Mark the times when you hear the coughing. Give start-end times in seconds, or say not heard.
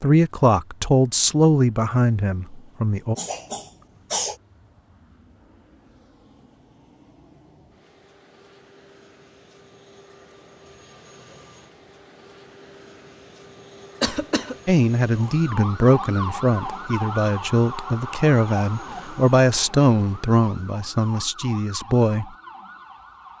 3.1-4.3, 14.0-14.6.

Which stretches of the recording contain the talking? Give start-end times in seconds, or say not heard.
0.0-3.1, 14.7-22.3.